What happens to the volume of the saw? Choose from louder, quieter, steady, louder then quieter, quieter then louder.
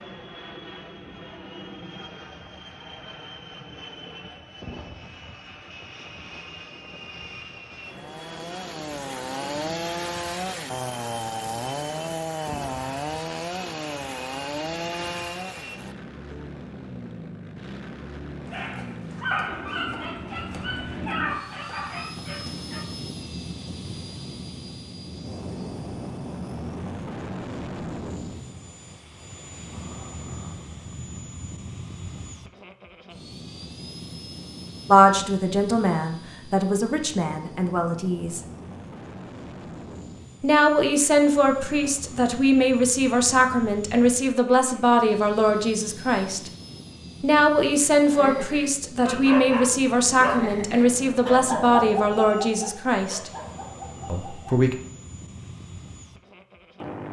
steady.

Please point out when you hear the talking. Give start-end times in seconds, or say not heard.
34.9-38.4, 40.4-46.5, 47.2-53.3, 54.0-54.8.